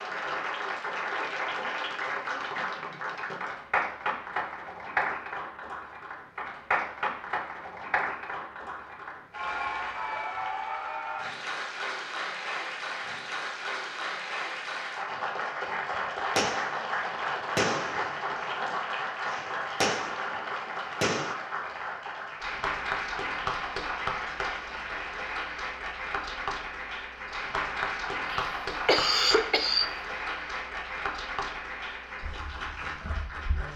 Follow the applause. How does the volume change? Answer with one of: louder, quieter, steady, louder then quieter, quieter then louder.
steady.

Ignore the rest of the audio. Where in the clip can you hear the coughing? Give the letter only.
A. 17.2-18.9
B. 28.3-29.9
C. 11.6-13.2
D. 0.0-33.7
B.